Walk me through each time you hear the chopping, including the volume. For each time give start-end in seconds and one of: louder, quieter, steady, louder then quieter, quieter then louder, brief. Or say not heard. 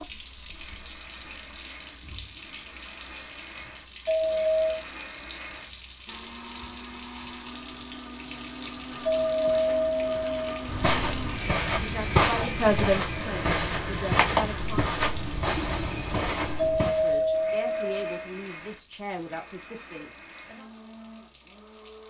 not heard.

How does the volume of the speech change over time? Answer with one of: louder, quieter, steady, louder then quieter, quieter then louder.
quieter.